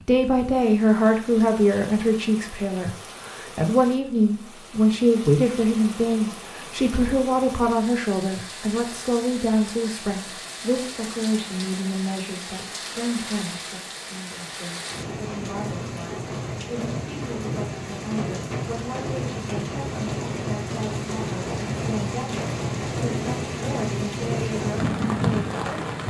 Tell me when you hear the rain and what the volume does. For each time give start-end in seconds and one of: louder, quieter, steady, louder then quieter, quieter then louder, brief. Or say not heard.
0.0-26.0 louder.